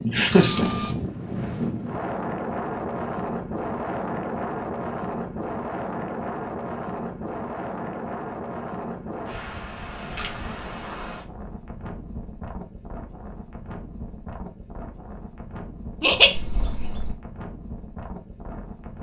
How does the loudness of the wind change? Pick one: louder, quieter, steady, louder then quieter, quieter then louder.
quieter.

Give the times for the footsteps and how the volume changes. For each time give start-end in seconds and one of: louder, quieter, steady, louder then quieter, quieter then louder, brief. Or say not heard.
not heard.